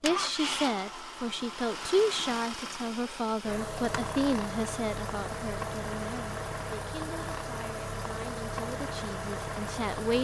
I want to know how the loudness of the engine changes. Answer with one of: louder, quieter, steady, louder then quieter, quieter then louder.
steady.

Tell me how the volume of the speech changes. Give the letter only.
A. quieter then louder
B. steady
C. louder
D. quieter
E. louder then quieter
D.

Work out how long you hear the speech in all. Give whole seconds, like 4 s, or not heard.
10 s.